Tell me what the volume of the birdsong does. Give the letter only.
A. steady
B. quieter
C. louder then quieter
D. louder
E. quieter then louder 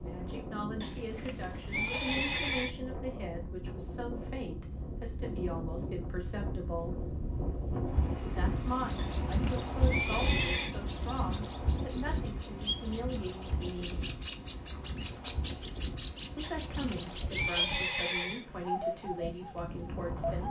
D.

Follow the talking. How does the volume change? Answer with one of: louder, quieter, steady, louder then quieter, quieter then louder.
steady.